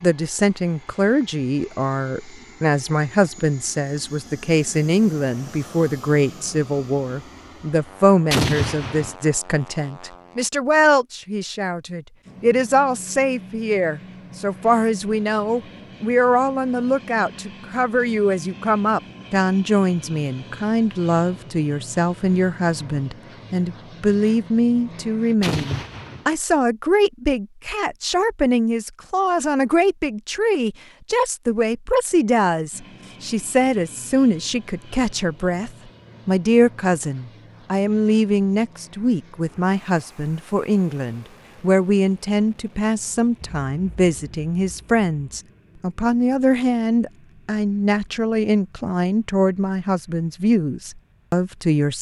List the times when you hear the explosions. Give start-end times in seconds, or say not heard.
8.3-9.2, 25.4-26.3, 43.4-45.4.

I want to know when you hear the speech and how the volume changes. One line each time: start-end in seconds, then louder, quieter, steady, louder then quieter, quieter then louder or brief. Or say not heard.
0.0-51.9 steady.